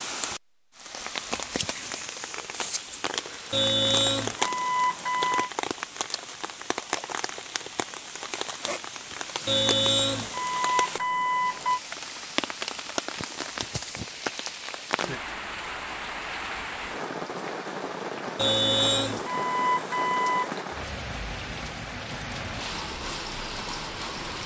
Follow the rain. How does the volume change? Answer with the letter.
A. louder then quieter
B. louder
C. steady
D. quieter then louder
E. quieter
C.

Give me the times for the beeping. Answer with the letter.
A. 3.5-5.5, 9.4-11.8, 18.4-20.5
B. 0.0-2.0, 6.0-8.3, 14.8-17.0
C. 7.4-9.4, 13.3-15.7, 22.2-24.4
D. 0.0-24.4
A.